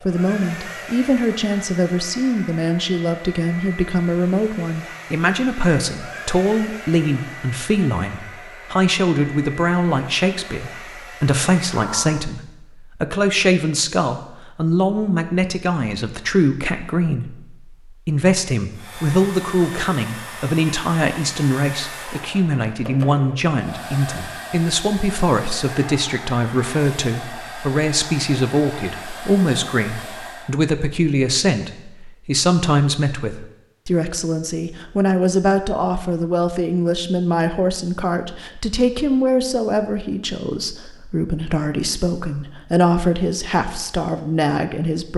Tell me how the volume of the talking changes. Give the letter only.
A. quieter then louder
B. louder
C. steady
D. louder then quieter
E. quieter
C.